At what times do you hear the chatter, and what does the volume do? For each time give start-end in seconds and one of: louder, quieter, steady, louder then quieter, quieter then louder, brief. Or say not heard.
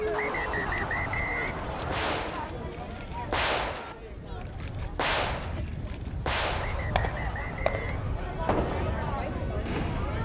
0.0-10.2 quieter then louder.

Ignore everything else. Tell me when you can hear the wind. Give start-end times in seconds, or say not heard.
0.0-10.2.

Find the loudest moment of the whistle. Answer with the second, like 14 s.
1 s.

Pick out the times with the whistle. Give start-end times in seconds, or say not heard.
0.1-2.1, 6.6-8.0.